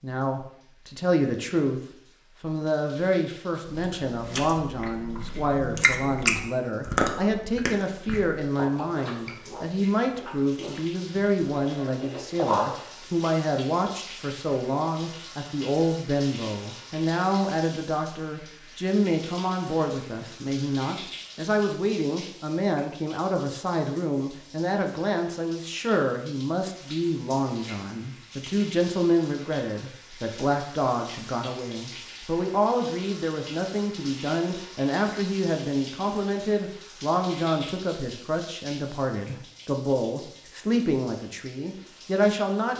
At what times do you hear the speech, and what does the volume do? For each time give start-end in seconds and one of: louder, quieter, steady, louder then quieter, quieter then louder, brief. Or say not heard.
0.0-1.8 brief
2.4-42.7 steady.